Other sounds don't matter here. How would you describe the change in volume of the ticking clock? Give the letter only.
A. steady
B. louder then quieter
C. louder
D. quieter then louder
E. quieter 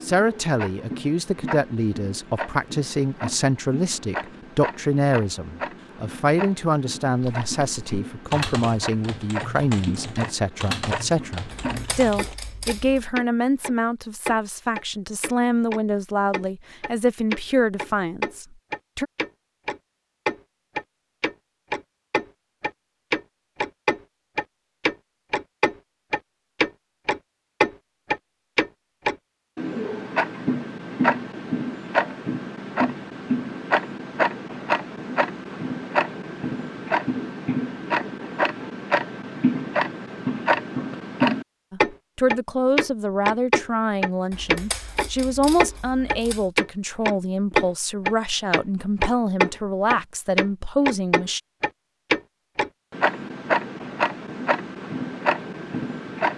C.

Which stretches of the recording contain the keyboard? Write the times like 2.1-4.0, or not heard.
7.2-12.3.